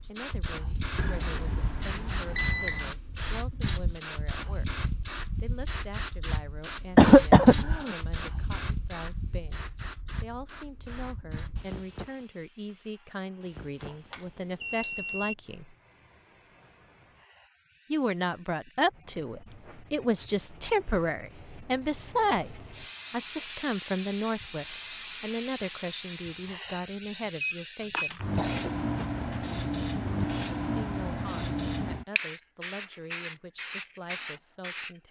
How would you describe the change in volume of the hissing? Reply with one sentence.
The loudness of the hissing goes down, then up.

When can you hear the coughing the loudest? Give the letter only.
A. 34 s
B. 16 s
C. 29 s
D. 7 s
D.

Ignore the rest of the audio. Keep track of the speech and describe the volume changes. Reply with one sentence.
The volume of the speech goes up, then down.